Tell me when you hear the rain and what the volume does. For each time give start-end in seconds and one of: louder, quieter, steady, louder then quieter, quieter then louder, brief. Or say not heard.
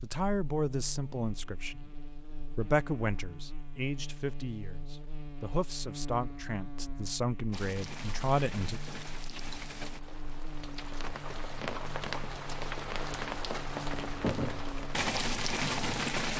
7.5-16.3 louder.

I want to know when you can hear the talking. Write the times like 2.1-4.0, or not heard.
0.0-8.8.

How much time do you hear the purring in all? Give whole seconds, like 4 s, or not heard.
not heard.